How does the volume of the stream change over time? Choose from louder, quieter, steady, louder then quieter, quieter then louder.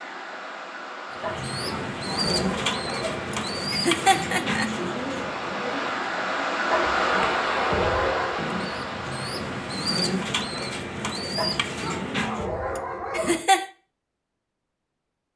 louder then quieter.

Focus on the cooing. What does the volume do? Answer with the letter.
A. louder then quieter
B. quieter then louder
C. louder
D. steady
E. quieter
B.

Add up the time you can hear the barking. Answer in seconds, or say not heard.
6 s.